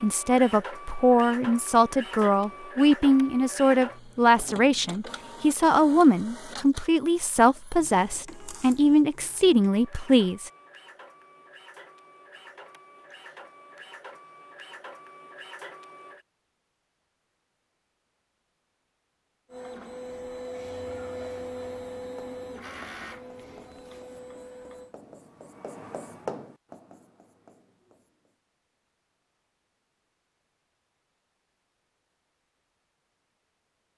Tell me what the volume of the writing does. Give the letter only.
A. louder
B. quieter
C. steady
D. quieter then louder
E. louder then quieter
E.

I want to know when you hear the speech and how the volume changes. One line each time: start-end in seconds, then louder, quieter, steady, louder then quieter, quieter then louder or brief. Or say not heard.
0.0-10.5 steady.